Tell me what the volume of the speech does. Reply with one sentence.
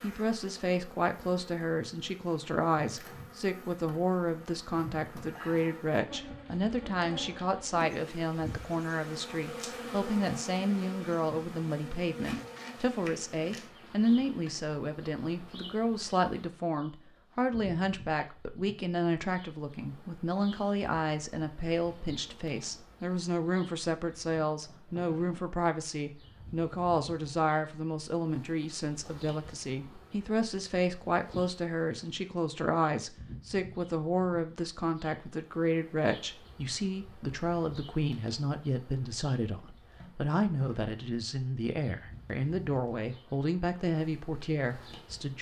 The loudness of the speech stays about the same.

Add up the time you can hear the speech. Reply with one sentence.
The speech can be heard for 45 seconds in total.